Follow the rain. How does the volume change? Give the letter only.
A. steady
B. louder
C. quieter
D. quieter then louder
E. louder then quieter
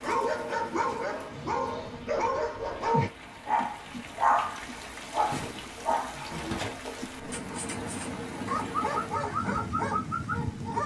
B.